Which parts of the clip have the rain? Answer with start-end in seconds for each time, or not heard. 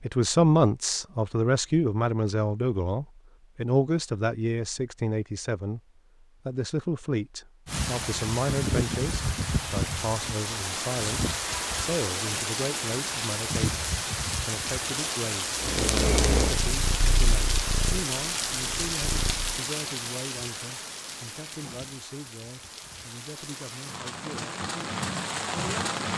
7.7-26.1.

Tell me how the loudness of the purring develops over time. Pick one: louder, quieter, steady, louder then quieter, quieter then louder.
quieter.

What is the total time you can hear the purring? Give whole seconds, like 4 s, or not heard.
4 s.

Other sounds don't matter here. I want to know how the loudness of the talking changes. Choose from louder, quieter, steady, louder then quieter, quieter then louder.
quieter.